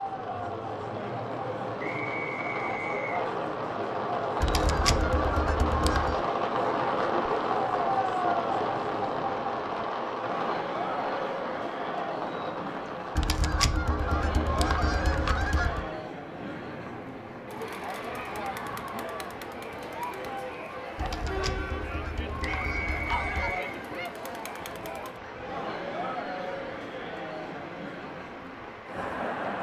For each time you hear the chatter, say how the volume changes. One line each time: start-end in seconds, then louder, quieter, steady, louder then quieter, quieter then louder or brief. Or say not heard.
0.0-29.5 steady.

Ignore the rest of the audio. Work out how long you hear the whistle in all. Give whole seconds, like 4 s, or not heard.
3 s.